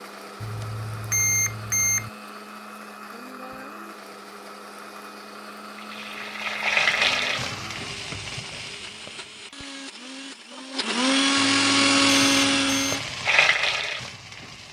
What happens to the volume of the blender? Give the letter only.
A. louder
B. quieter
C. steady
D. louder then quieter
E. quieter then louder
A.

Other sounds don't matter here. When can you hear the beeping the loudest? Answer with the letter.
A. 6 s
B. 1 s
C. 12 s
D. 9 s
B.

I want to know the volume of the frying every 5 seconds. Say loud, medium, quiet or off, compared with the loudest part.
off, loud, loud.